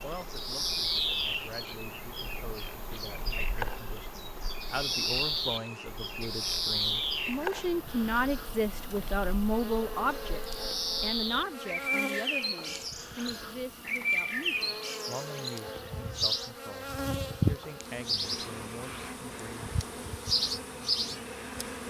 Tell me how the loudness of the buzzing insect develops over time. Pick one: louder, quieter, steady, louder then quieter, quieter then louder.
steady.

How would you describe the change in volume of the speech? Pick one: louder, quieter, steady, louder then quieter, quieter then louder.
louder then quieter.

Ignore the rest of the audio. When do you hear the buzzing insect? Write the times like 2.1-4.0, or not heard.
0.0-21.8.